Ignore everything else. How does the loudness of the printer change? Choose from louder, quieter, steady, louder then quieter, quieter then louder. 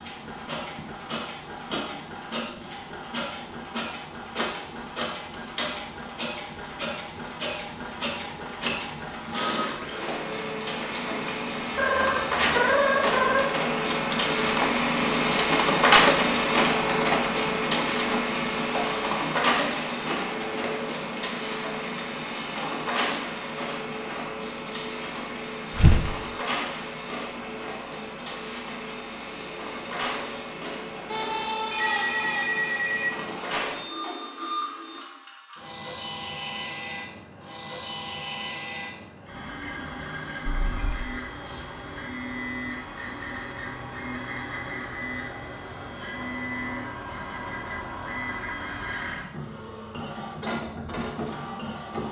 louder then quieter.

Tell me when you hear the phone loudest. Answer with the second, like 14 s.
13 s.